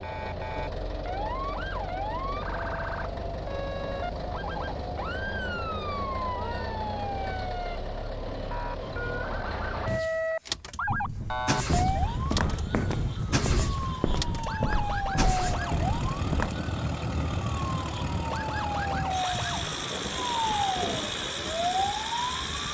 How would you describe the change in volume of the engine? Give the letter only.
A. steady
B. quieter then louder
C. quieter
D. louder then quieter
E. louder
A.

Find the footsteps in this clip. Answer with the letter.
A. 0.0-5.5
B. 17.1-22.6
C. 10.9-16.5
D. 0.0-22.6
C.